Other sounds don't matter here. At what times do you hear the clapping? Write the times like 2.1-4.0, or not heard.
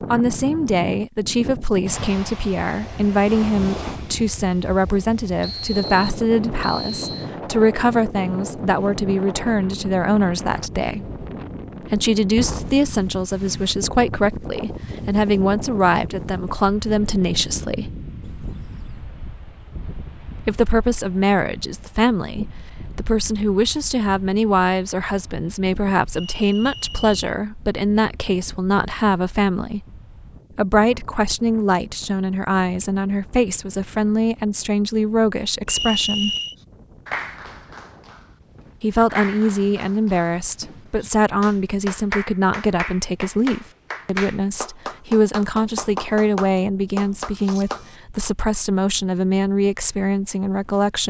36.5-47.9.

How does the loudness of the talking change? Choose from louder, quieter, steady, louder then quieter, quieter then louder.
steady.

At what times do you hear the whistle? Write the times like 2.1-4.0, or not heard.
5.4-7.3, 26.1-27.3, 35.6-36.5.